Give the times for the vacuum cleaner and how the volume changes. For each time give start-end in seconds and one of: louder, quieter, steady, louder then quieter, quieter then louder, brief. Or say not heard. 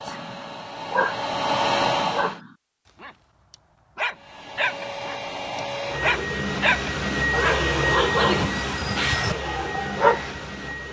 0.0-2.4 brief
4.1-10.8 louder then quieter.